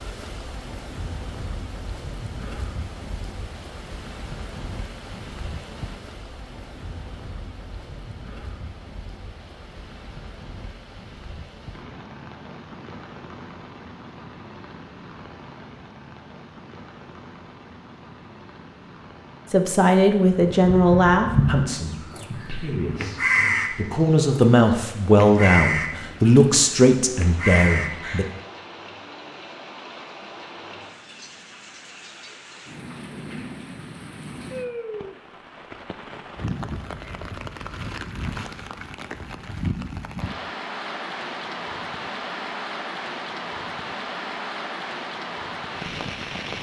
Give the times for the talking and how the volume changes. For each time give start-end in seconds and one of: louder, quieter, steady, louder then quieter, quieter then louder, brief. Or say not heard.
19.5-28.2 quieter then louder.